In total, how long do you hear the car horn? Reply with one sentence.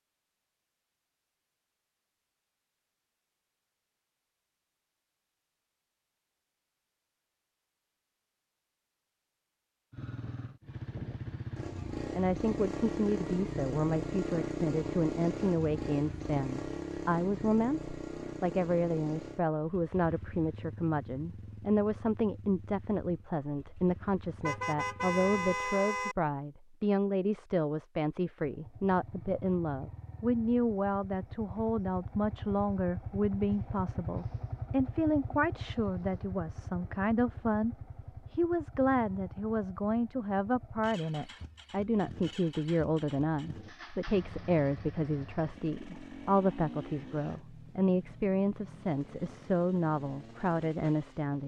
The car horn can be heard for 2 seconds in total.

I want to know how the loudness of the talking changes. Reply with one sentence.
The volume of the talking stays about the same.